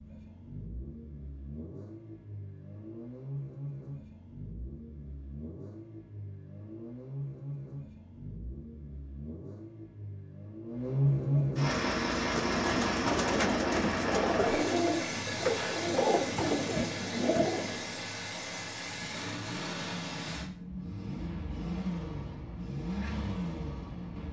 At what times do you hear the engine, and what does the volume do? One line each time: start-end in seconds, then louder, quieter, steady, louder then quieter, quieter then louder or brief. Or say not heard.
0.0-24.2 louder then quieter.